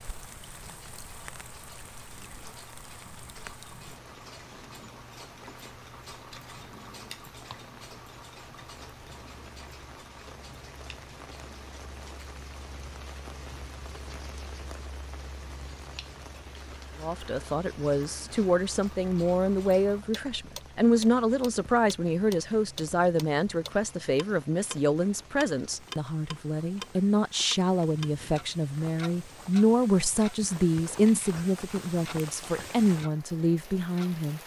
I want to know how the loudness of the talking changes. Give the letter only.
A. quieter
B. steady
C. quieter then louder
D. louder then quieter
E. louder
B.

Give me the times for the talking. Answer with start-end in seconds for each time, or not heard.
17.0-34.4.